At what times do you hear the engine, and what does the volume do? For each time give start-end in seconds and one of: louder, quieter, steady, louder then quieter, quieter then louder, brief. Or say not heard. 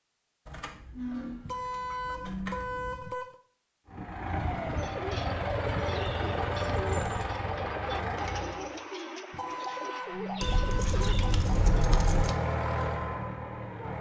3.9-8.8 steady
11.3-13.9 brief.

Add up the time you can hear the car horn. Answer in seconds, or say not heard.
4 s.